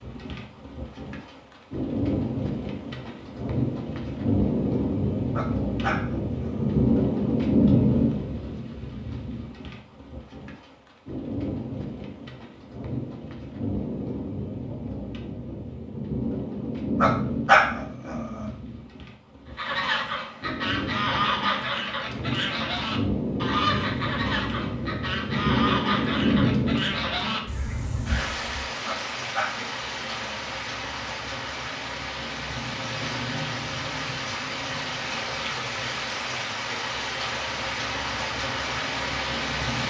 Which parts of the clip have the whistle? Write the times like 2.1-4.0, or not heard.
not heard.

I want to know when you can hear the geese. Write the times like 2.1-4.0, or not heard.
19.6-28.7.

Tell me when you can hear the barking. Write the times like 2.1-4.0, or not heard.
5.3-6.7, 17.0-18.5, 28.9-30.3.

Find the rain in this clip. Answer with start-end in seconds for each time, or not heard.
0.0-39.8.